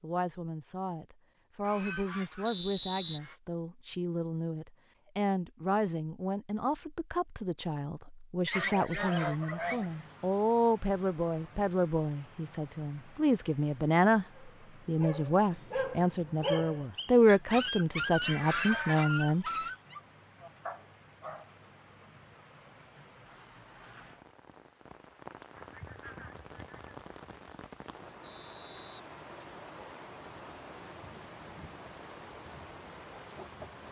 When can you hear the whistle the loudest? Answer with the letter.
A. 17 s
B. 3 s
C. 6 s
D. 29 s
B.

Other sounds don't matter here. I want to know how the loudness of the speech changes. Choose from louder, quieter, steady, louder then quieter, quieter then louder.
louder.